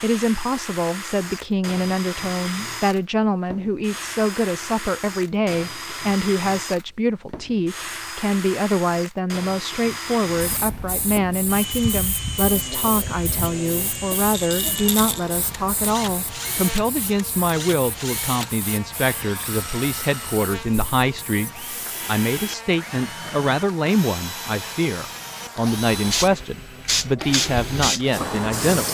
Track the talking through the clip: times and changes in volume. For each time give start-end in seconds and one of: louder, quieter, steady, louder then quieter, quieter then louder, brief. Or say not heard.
0.0-28.8 steady.